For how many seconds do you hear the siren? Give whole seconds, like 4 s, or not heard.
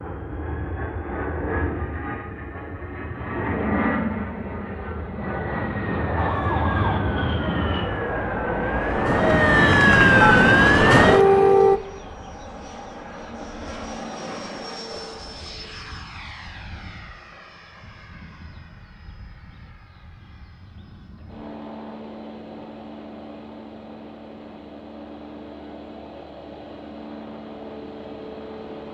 6 s.